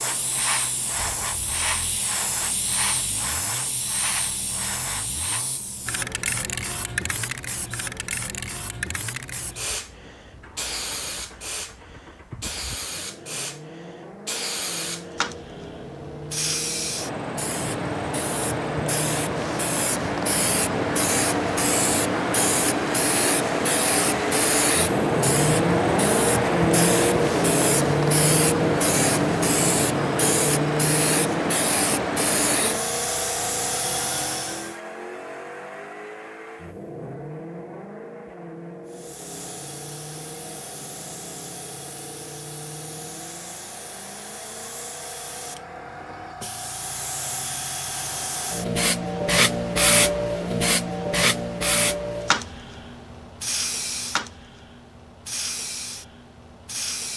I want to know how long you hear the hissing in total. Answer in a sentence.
The hissing can be heard for 53 seconds in total.